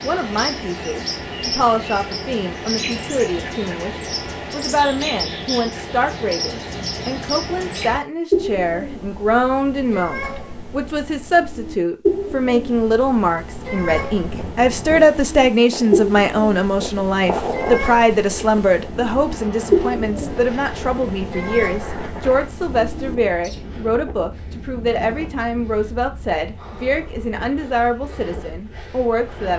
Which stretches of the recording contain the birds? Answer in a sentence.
You can hear the birds from 0.0 to 23.6 s.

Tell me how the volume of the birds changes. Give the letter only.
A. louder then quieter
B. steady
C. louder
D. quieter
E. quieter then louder
B.